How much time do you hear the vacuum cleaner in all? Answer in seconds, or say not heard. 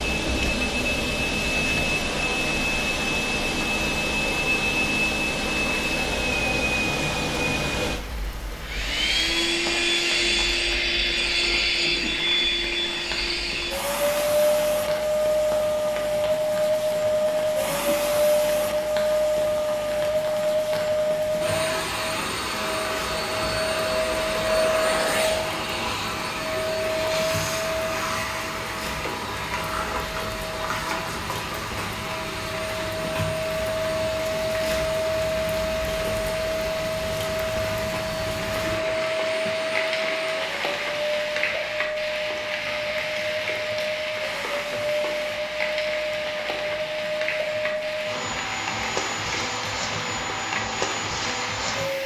52 s.